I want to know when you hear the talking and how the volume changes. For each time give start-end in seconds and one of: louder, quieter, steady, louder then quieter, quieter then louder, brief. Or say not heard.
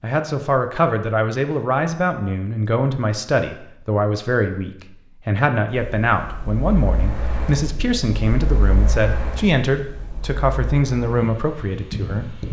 0.0-12.4 steady.